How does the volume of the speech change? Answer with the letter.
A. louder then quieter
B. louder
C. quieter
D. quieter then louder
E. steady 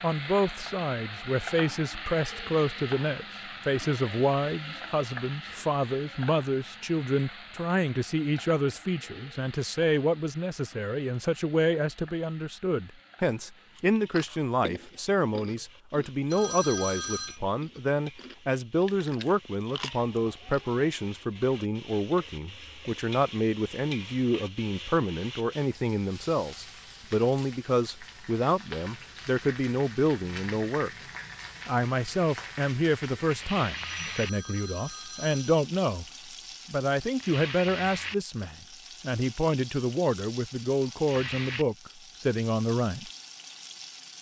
E.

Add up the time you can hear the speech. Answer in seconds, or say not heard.
42 s.